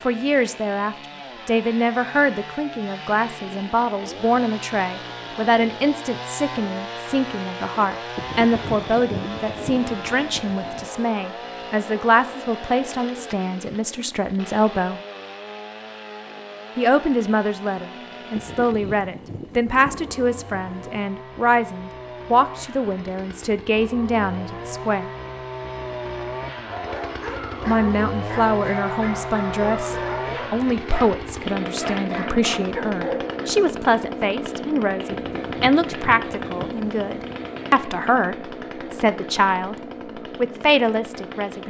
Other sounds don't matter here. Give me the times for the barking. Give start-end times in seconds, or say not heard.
26.7-33.3.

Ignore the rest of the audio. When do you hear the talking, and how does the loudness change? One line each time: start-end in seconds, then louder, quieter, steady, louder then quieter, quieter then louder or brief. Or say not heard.
0.0-15.0 steady
16.8-25.1 steady
27.6-39.8 steady
40.4-41.6 brief.